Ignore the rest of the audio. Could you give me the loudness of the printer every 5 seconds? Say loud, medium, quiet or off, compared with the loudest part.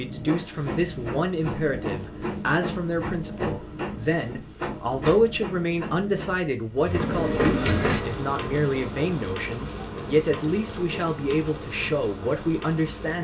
loud, loud, medium.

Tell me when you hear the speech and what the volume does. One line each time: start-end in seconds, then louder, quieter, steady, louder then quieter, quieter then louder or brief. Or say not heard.
0.0-13.1 steady.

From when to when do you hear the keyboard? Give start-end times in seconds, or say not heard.
not heard.